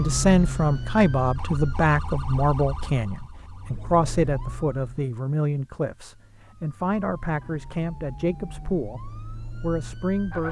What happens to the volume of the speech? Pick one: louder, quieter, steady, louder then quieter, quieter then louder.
quieter.